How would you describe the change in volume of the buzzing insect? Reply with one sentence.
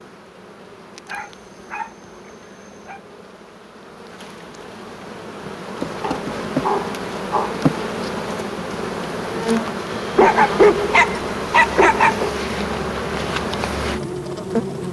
The loudness of the buzzing insect goes up.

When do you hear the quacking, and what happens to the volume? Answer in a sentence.
The quacking can't be heard in this clip.